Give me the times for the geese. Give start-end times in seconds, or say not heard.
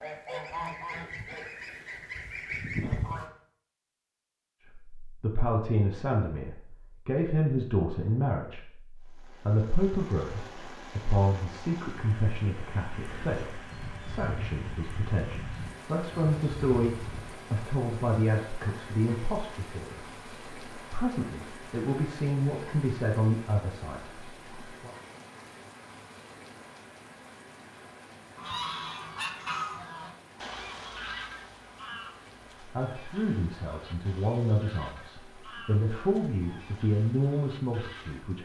0.0-3.3, 13.0-17.3, 28.4-38.2.